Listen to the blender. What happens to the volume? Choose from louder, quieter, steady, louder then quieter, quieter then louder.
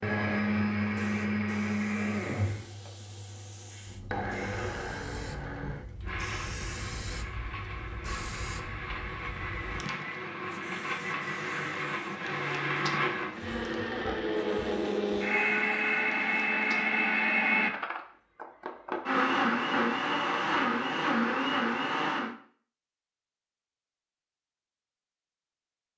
quieter then louder.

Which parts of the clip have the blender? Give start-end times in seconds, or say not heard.
0.0-22.4.